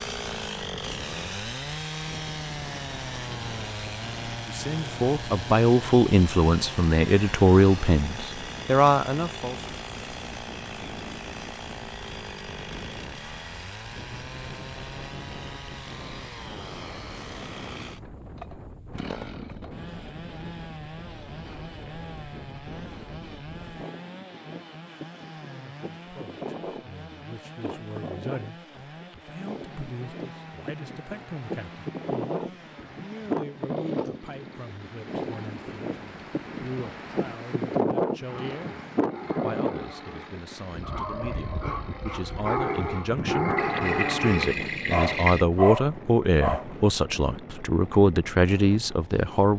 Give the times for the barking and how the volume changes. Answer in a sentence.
You can hear the barking from 38.2 to 46.6 s, getting louder.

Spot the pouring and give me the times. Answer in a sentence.
The pouring can be heard from 43.5 to 45.5 s.